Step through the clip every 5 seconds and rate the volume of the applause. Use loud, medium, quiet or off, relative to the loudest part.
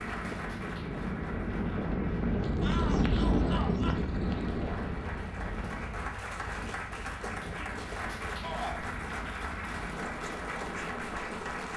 medium, loud, loud.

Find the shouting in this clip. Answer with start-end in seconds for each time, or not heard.
2.6-4.0, 8.4-8.8.